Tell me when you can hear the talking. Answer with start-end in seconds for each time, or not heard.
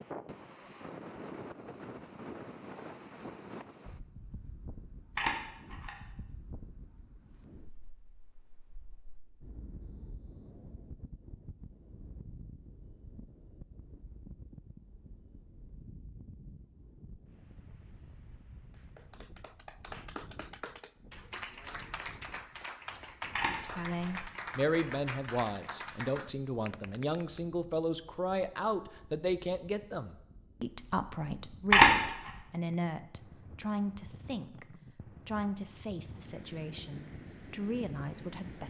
23.5-38.6.